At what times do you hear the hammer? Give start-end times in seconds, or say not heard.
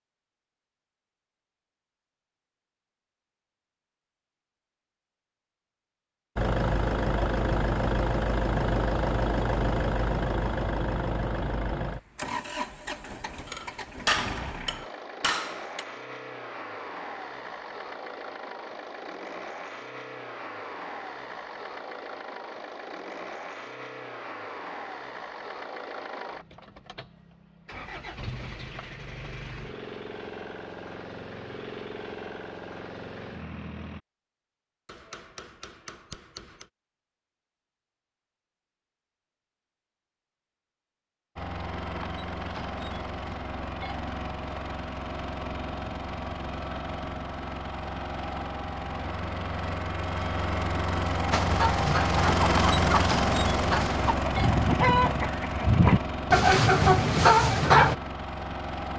13.4-15.8, 34.9-36.6.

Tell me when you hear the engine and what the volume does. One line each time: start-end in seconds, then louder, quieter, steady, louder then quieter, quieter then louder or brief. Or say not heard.
6.3-34.0 quieter
41.4-58.9 louder then quieter.